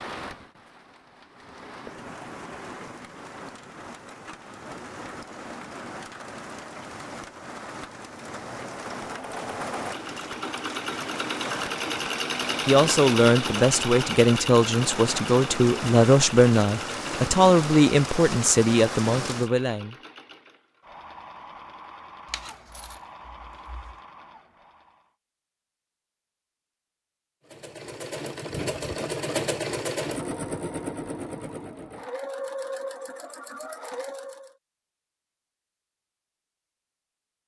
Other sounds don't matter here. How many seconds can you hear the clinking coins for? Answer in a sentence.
You can hear the clinking coins for 2 seconds altogether.